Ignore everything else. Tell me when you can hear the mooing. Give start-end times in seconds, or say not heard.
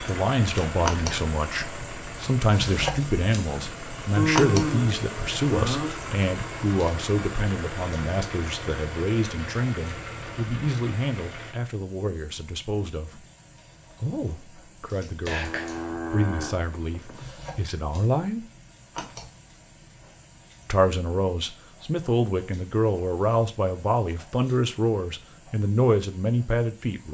4.2-6.0, 15.3-17.3.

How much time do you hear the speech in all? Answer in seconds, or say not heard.
24 s.